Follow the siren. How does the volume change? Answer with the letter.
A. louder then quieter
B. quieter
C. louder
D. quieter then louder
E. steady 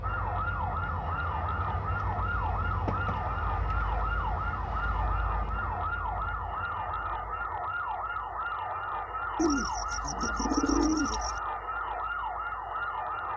E.